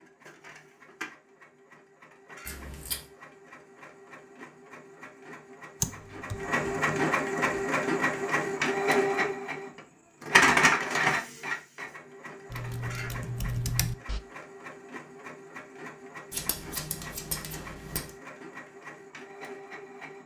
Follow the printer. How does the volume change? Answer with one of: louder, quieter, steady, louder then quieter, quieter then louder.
louder then quieter.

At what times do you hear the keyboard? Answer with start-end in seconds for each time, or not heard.
5.8-7.7, 12.5-14.2.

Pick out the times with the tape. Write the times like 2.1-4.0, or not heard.
not heard.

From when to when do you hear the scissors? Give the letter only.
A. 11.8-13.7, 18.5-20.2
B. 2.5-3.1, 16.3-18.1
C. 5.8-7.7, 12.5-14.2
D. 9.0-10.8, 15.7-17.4
B.